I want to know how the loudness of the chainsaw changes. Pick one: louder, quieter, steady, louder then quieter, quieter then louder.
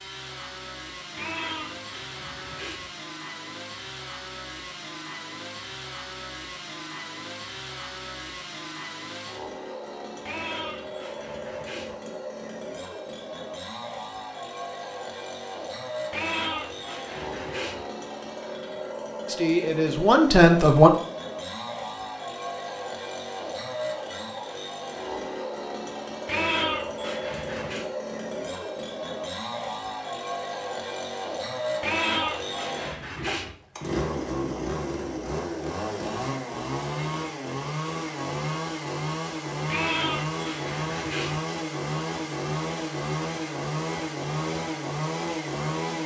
louder.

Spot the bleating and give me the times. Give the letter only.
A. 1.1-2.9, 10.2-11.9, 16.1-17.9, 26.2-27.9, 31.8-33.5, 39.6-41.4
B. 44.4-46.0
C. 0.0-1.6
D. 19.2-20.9
A.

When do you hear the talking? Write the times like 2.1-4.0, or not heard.
19.2-20.9.